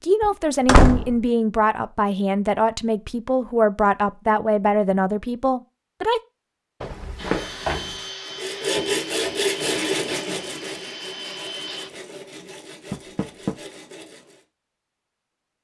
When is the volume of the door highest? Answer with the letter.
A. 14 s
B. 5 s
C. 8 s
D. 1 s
D.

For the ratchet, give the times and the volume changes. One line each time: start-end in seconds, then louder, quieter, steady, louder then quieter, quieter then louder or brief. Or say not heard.
not heard.